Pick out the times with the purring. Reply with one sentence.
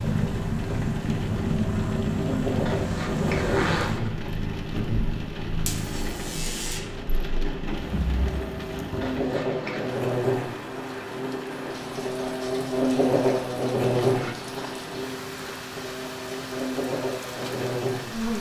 The purring can be heard from 0.0 to 9.2 s.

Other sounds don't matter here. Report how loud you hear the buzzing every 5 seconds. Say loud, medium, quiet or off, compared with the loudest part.
medium, medium, loud, medium.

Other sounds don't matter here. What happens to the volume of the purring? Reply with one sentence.
The loudness of the purring goes down.